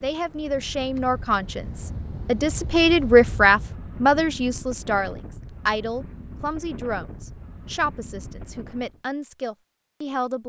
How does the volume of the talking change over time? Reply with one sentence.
The loudness of the talking goes up, then down.